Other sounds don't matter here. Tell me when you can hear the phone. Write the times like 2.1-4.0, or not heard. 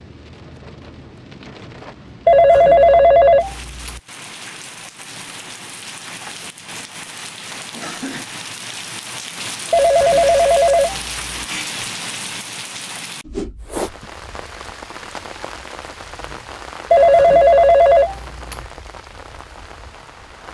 2.2-4.0, 9.7-11.3, 16.9-18.6.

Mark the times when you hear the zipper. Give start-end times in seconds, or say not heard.
not heard.